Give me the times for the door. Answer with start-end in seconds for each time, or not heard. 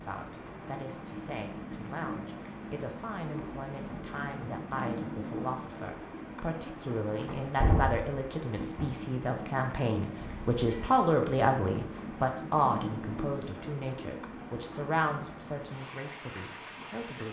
7.2-8.9.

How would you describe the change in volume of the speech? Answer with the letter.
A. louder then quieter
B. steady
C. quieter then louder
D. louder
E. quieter
A.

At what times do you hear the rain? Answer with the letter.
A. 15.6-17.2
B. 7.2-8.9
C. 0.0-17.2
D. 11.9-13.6
C.